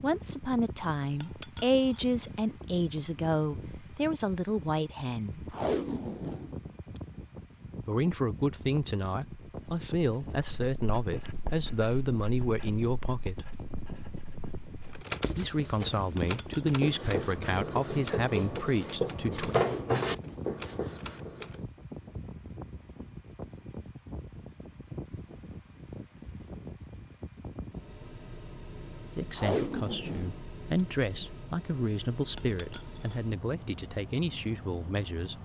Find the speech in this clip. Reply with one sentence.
You can hear the speech from 0.0 to 5.5 s, from 7.8 to 13.6 s, from 15.3 to 19.6 s and from 29.1 to 35.3 s.